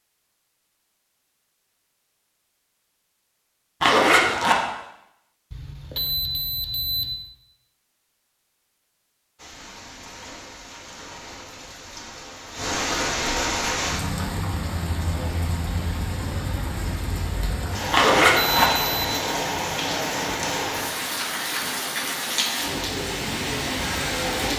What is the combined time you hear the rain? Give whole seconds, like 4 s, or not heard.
15 s.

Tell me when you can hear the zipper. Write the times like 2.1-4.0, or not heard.
3.8-4.6, 17.9-18.7.